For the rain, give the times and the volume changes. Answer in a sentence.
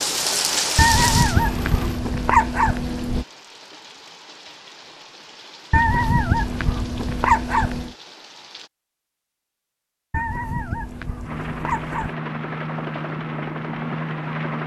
The rain can be heard from 0.0 to 8.7 s, getting quieter.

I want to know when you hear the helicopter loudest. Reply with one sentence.
The volume of the helicopter peaks at 14 seconds.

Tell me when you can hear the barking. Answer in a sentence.
You can hear the barking from 0.8 to 3.2 s, from 5.7 to 7.9 s and from 10.1 to 12.2 s.